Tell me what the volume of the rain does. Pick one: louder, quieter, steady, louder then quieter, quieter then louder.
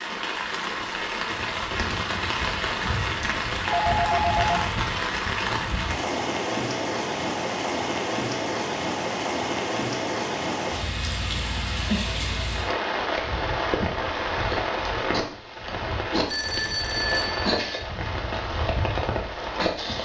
steady.